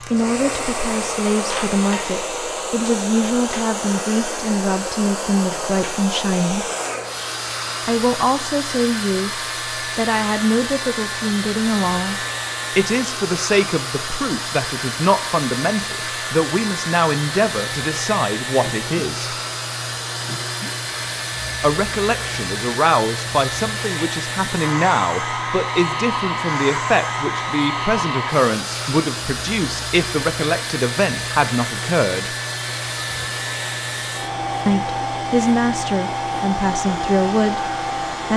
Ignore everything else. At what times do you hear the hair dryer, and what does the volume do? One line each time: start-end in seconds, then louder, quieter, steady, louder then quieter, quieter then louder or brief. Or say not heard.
0.0-38.3 steady.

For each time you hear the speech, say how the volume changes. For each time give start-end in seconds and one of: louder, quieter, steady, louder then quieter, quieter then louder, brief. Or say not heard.
0.0-6.7 steady
7.8-19.4 steady
21.6-32.3 steady
34.6-37.6 brief.